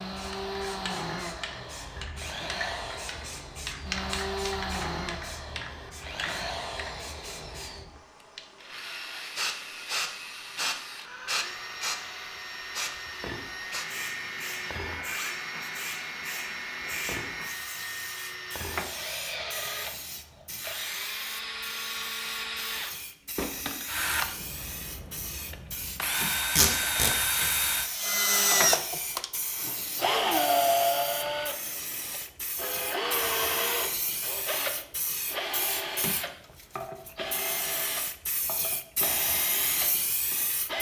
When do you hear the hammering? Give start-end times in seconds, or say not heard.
not heard.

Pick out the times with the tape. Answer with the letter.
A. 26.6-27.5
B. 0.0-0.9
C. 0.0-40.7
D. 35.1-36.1
A.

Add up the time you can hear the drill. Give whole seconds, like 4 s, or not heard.
41 s.